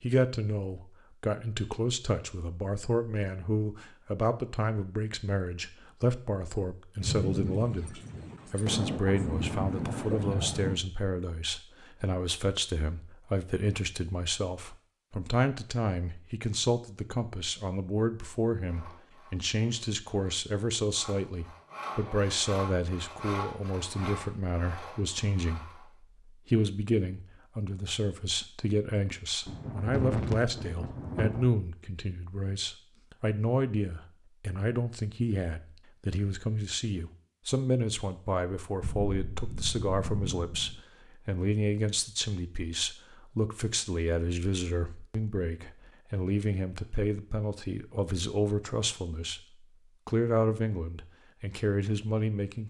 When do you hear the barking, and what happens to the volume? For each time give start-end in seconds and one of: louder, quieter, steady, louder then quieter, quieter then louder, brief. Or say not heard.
not heard.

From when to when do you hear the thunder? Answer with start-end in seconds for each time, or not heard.
7.0-10.8, 29.4-31.5, 38.8-40.8.